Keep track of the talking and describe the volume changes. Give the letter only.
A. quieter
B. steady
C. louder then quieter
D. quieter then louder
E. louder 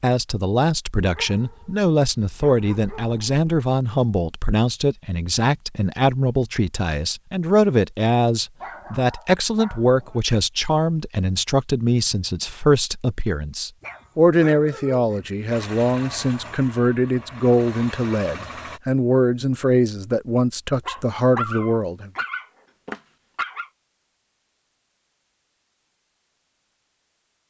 B.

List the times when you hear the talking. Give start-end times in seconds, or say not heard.
0.0-22.1.